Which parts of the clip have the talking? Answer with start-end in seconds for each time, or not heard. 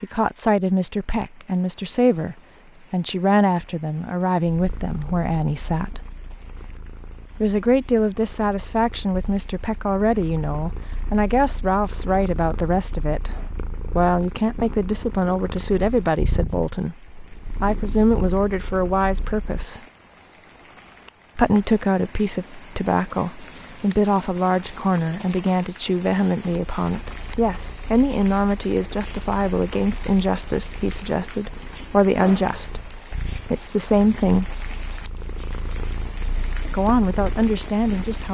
0.0-6.0, 7.4-13.3, 13.9-19.8, 21.4-34.5, 36.6-38.2.